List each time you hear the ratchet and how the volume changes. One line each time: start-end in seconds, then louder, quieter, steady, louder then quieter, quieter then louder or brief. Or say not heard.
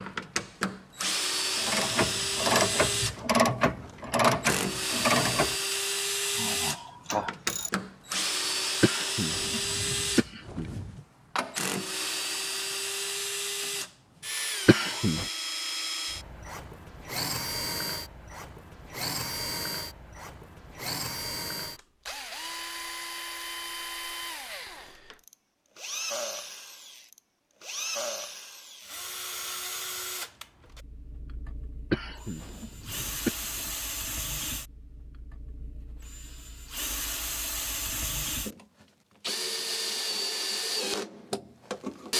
1.6-7.7 quieter.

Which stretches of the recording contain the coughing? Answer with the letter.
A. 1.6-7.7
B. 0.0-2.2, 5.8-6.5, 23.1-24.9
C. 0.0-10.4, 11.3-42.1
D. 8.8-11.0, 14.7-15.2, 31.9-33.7
D.